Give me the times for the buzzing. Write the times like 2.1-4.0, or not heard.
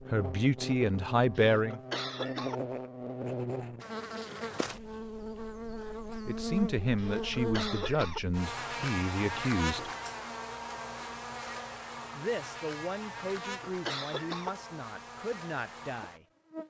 0.0-16.6.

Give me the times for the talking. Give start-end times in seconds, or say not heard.
0.1-1.8, 6.2-9.9, 12.2-16.2.